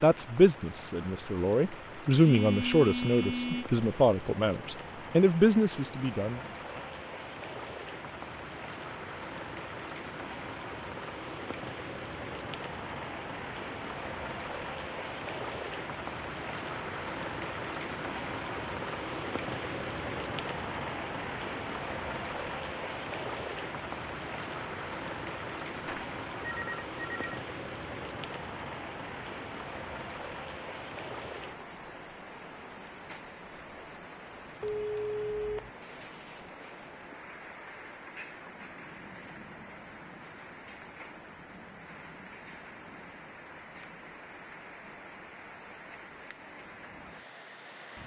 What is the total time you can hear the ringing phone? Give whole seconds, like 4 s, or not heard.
4 s.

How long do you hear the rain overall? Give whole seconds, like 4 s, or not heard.
48 s.